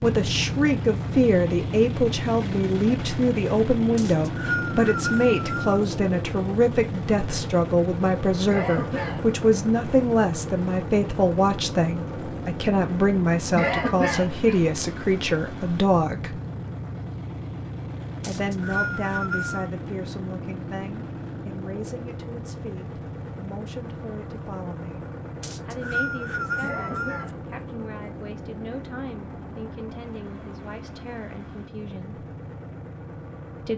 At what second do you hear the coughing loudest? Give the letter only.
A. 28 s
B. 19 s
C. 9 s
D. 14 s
D.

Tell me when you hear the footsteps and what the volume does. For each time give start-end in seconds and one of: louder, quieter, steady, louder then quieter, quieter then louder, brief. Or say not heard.
not heard.